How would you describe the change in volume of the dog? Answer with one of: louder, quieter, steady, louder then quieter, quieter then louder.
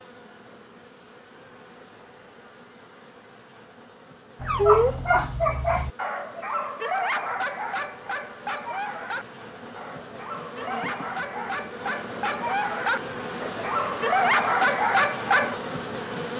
quieter then louder.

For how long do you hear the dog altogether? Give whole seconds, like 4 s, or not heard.
11 s.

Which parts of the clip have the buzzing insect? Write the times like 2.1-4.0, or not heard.
0.0-16.3.